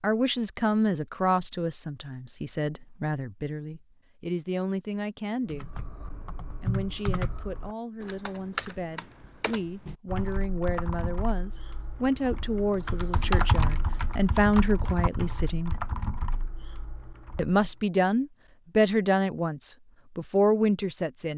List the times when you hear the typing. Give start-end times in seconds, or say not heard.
5.5-17.6.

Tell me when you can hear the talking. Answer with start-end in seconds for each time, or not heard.
0.0-5.7, 6.6-15.8, 17.4-21.3.